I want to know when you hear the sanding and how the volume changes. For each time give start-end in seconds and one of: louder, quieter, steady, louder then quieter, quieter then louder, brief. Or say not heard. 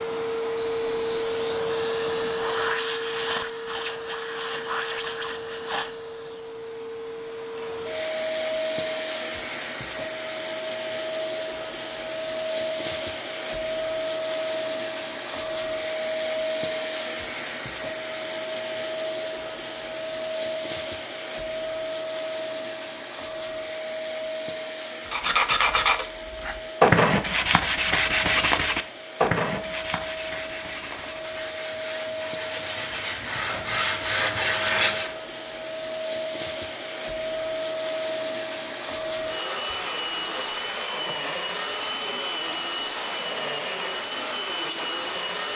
25.1-35.1 quieter then louder.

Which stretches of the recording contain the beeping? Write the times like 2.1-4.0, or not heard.
0.6-1.2.